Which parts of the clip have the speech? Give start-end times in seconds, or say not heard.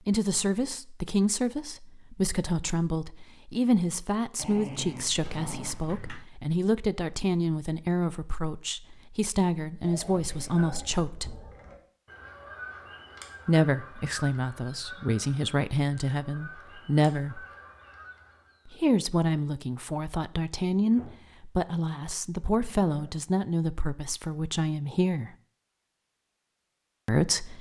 0.1-11.3, 13.4-17.4, 18.6-25.3, 27.1-27.5.